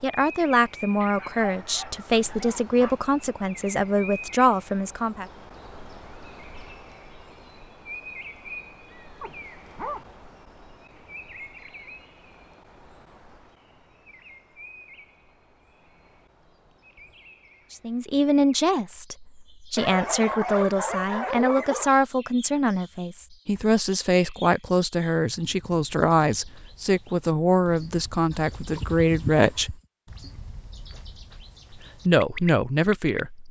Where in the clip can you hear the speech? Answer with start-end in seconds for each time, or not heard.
0.0-5.2, 17.7-29.8, 31.8-33.4.